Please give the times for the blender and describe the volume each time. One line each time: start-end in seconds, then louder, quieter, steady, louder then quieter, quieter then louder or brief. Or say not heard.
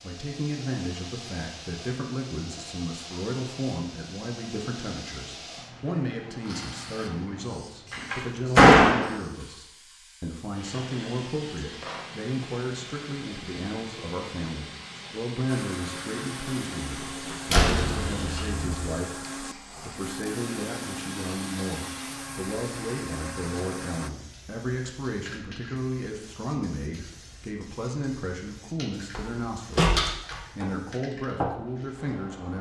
15.4-24.1 steady.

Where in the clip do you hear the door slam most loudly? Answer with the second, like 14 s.
9 s.